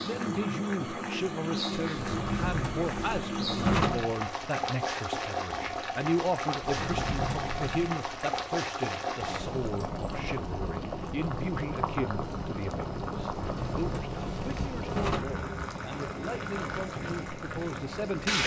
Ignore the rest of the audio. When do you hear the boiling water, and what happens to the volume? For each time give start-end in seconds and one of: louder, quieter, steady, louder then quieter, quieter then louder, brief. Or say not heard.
0.0-18.4 steady.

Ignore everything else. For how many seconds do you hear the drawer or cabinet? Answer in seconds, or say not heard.
6 s.